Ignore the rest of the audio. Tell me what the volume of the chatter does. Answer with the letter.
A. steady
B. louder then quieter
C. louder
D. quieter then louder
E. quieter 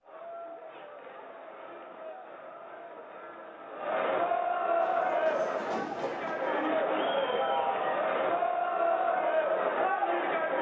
C.